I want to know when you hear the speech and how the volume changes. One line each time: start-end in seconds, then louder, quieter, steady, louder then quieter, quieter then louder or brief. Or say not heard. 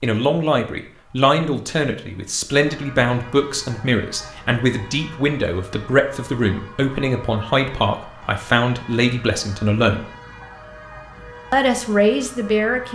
0.0-10.1 steady
11.5-12.9 brief.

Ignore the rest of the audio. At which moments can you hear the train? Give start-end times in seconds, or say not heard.
not heard.